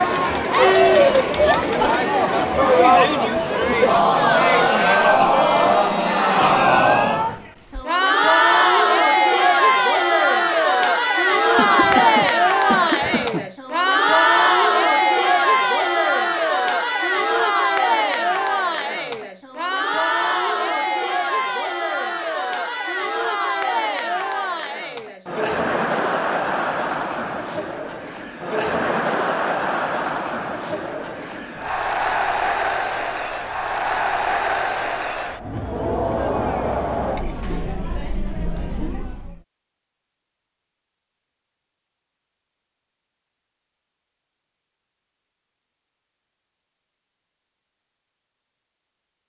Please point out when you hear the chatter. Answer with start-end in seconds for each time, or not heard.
0.0-39.4.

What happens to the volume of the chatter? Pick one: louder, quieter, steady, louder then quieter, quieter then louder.
quieter.